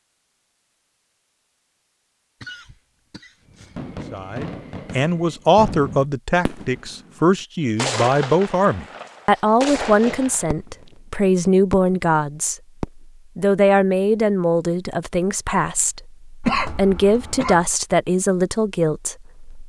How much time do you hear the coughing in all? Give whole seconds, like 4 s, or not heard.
4 s.